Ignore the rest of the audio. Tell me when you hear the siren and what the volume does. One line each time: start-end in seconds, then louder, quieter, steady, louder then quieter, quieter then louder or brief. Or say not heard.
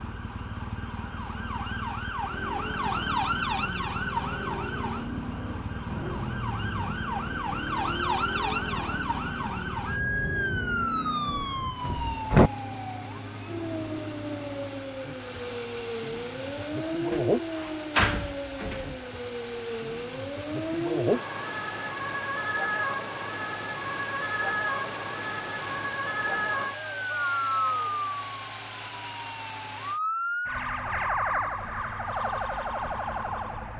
0.0-33.7 steady.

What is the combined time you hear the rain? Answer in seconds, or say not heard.
not heard.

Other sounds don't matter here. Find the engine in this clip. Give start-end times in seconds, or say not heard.
2.2-30.0.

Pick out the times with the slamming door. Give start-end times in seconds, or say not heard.
11.2-12.5, 17.1-18.9.